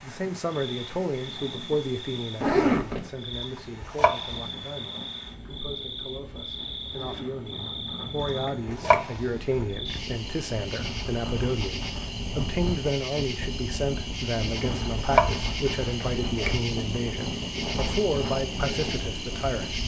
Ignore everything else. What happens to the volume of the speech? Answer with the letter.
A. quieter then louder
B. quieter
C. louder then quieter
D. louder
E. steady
A.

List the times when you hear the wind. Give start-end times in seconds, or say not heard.
0.0-19.8.